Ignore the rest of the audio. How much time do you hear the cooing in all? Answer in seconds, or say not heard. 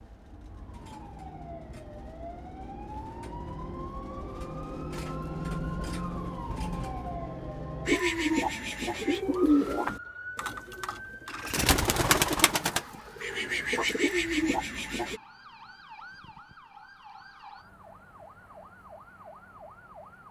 7 s.